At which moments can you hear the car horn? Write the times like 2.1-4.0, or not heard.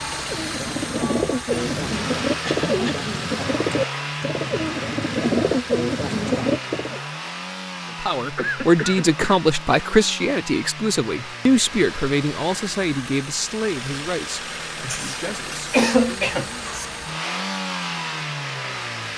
not heard.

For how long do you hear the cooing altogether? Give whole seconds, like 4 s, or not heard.
7 s.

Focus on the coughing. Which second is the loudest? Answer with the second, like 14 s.
16 s.